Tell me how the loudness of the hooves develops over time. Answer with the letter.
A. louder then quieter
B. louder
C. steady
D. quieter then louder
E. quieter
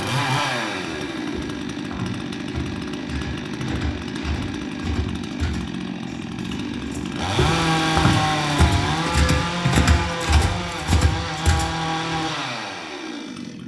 B.